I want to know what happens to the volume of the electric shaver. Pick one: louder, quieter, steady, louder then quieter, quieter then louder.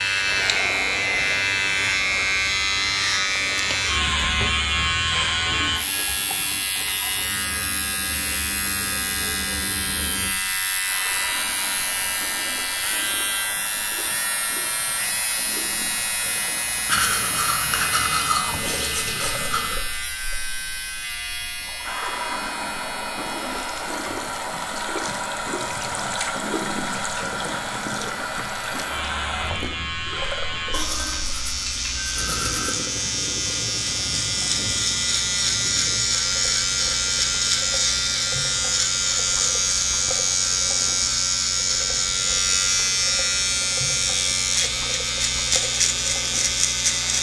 quieter then louder.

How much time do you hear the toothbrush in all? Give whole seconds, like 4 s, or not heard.
5 s.